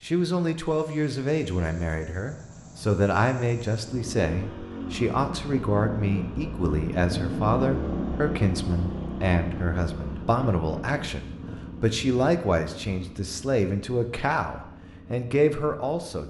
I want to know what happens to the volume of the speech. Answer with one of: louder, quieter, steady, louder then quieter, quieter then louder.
steady.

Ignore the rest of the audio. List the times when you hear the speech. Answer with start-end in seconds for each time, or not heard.
0.0-16.2.